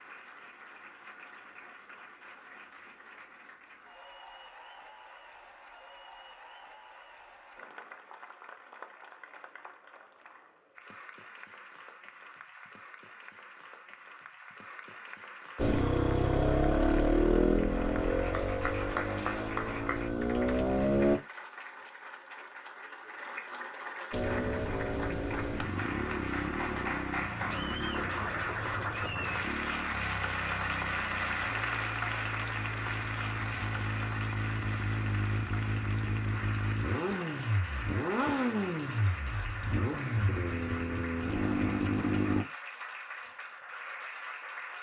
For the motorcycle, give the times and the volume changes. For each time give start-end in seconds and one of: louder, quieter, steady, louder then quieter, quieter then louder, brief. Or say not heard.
15.6-21.2 quieter then louder
24.1-42.5 quieter then louder.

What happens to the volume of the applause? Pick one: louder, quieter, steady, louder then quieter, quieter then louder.
louder then quieter.